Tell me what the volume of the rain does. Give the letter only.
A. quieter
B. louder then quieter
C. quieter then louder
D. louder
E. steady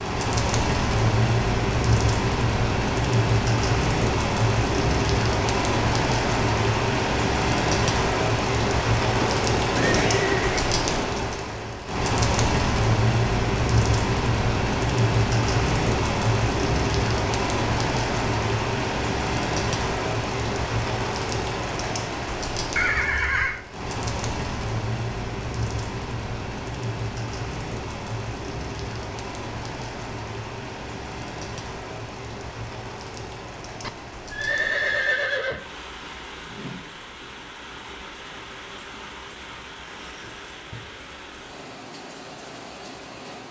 A.